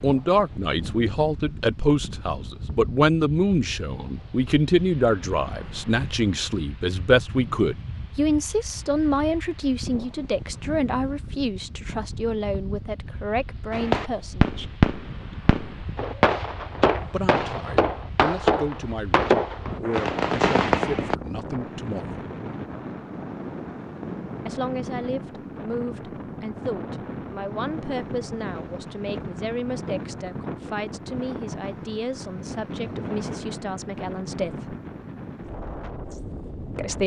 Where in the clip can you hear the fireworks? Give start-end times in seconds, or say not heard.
13.7-21.1.